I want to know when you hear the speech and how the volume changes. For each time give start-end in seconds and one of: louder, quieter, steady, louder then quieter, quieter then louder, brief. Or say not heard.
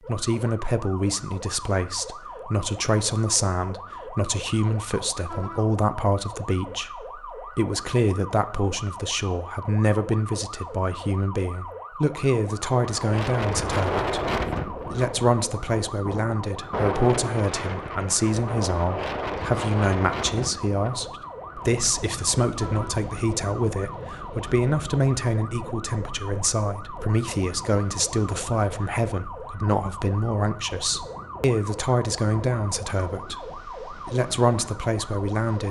0.1-35.6 steady.